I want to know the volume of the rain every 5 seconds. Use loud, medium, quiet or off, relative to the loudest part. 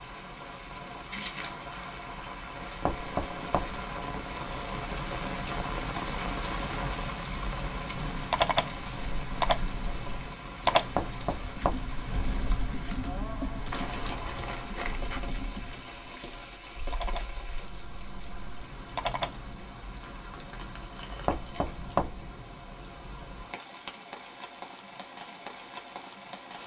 loud, loud, medium, medium, medium, medium.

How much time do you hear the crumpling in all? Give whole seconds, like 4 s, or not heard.
4 s.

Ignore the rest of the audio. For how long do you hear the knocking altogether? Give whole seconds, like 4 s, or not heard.
3 s.